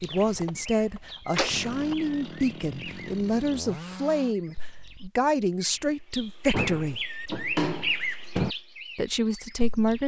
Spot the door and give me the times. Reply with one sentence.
The door can be heard from 1.2 to 1.9 s and from 6.5 to 8.5 s.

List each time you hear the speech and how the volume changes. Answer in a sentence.
You can hear the speech from 0.0 to 7.0 s, at a steady volume; and briefly from 8.9 to 10.0 s.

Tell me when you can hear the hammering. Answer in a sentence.
You can't hear the hammering here.